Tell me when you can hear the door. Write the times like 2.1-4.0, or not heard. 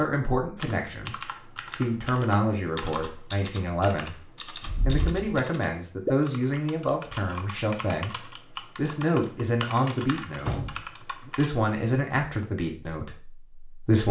4.6-5.4, 10.3-11.3.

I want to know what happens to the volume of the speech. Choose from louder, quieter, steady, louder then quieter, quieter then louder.
steady.